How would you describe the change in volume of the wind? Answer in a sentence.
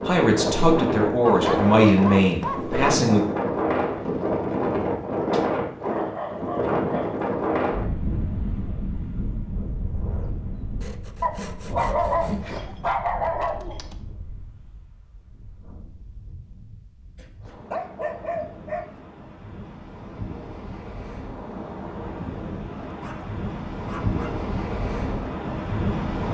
The volume of the wind goes down, then up.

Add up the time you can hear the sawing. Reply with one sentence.
You can hear the sawing for 2 seconds altogether.